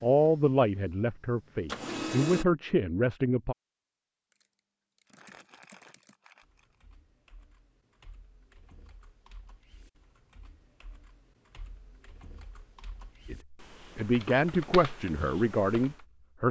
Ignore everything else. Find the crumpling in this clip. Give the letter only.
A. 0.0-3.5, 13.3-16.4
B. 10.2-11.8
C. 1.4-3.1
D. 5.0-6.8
D.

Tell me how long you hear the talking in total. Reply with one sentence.
You can hear the talking for 7 seconds altogether.